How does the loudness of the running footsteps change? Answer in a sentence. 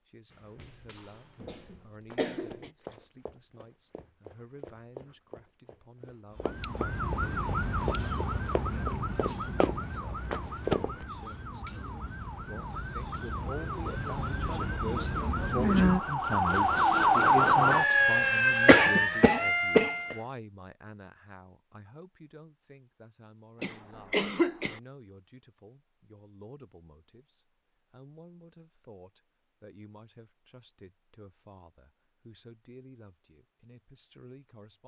The loudness of the running footsteps goes up.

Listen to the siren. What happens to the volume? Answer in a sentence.
The volume of the siren goes down, then up.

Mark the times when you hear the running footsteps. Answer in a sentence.
You can hear the running footsteps from 0.3 to 11.1 s.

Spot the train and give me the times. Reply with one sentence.
The train can't be heard in this clip.